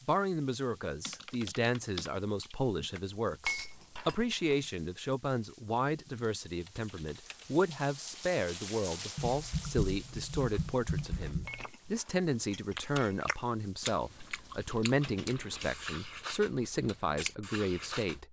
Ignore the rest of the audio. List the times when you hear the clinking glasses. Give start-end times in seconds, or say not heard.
3.5-4.5, 11.4-13.2.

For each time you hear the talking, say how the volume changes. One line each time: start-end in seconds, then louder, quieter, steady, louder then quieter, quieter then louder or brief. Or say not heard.
0.0-18.2 steady.